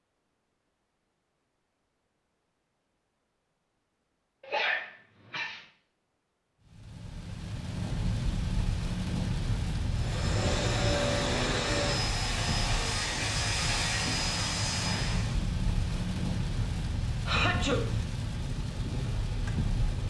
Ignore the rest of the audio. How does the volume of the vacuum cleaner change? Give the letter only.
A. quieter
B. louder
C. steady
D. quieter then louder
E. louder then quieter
C.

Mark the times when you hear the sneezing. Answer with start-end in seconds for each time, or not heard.
4.4-5.6, 17.2-17.9.